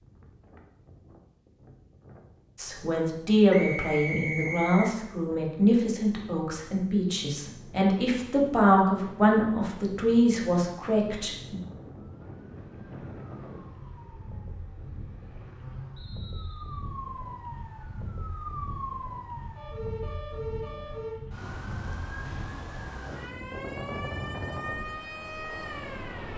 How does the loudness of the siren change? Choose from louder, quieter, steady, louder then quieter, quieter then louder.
louder.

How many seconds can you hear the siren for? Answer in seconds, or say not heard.
14 s.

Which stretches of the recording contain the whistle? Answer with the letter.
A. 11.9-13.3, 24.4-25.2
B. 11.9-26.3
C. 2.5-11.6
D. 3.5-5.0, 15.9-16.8
D.